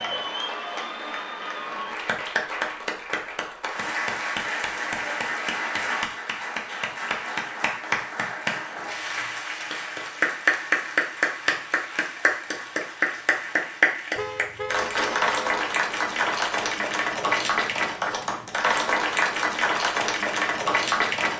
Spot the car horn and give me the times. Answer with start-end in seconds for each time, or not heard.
14.2-15.7.